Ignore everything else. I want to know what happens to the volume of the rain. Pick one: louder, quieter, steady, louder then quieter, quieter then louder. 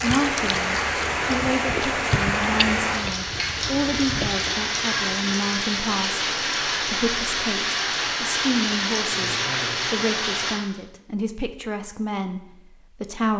steady.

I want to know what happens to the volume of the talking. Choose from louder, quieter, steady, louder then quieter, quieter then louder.
steady.